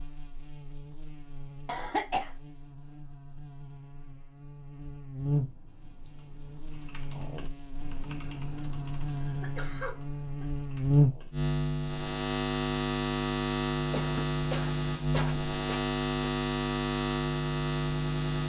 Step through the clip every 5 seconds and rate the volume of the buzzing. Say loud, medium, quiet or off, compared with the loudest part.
quiet, medium, loud, loud.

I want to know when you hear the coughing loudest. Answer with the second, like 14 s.
2 s.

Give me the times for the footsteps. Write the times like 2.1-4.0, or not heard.
not heard.